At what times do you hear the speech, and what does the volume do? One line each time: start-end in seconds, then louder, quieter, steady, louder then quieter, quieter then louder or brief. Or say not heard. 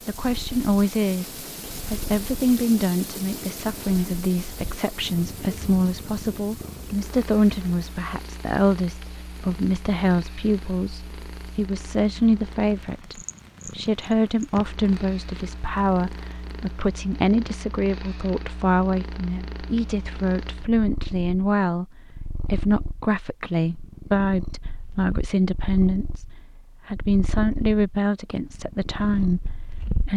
0.1-30.1 steady.